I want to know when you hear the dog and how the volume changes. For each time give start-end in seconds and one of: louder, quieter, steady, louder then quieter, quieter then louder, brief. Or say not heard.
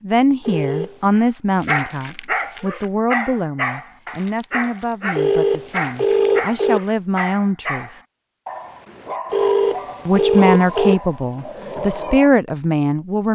1.1-12.3 quieter.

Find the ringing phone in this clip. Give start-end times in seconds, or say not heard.
0.4-1.1, 5.2-6.8, 9.3-10.9.